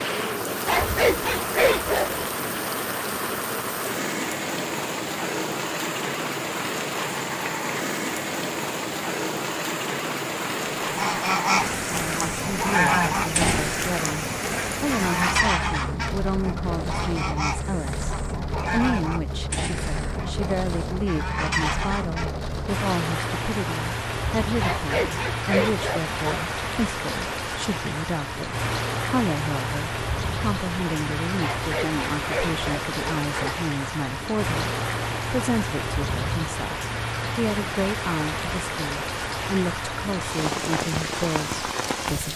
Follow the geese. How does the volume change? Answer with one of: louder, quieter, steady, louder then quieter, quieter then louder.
quieter.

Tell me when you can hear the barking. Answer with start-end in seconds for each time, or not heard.
0.7-2.2, 24.6-26.4, 31.4-33.6.